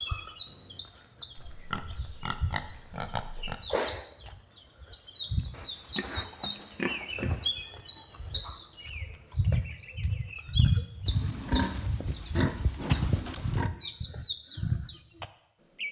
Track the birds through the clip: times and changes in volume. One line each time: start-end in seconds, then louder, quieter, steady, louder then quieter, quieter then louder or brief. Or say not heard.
0.0-15.8 louder.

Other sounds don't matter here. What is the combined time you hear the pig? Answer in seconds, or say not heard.
7 s.